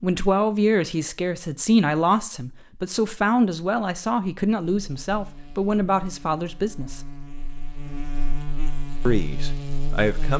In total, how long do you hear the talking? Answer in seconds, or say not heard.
8 s.